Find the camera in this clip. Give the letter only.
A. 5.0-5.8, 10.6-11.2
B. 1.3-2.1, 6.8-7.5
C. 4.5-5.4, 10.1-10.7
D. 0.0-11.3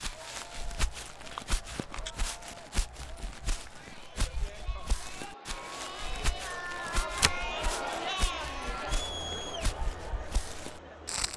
B.